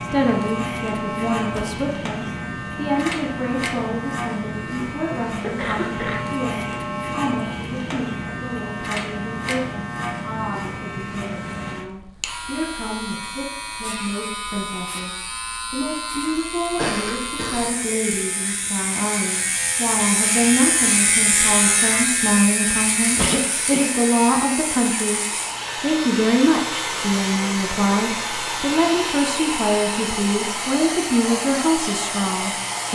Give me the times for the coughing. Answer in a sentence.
You can hear the coughing from 5.4 to 6.2 s, from 16.8 to 17.6 s and from 23.1 to 23.9 s.